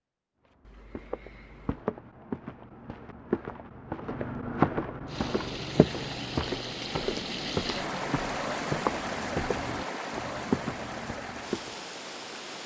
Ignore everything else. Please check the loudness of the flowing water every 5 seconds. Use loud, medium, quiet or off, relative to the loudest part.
off, loud, loud.